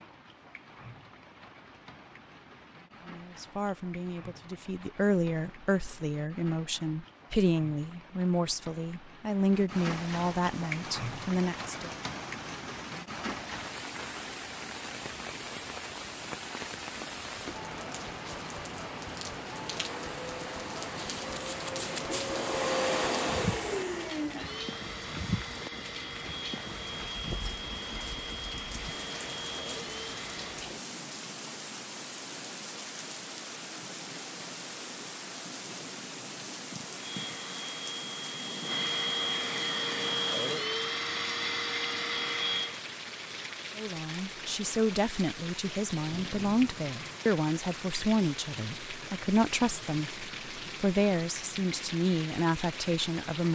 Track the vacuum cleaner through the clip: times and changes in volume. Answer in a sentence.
The vacuum cleaner can be heard from 19.6 to 30.6 s, getting louder then quieter; and from 36.9 to 42.8 s, getting louder.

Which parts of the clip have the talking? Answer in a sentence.
The talking can be heard from 3.0 to 11.9 s and from 43.8 to 53.5 s.